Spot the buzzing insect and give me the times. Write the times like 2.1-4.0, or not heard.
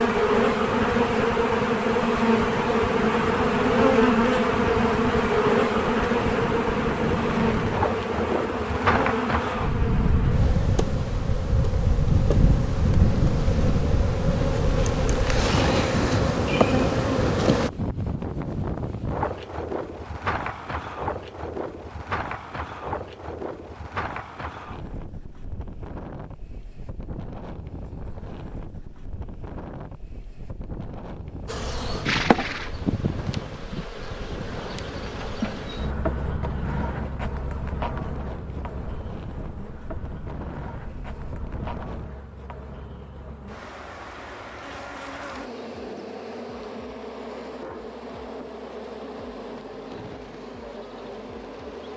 0.0-17.7, 31.4-51.9.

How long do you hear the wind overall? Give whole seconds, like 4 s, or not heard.
42 s.